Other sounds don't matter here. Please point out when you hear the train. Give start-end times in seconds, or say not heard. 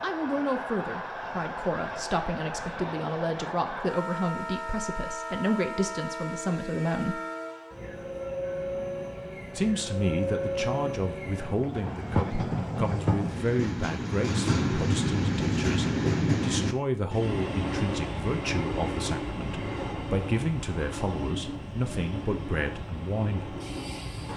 0.0-24.3.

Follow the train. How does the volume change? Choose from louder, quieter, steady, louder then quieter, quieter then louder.
louder then quieter.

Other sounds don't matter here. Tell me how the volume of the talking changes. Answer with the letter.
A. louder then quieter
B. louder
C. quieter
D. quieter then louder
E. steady
E.